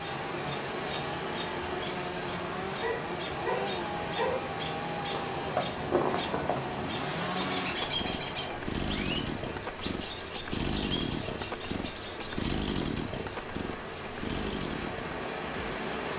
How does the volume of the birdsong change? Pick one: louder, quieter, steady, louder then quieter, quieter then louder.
louder then quieter.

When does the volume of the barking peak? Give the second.
4 s.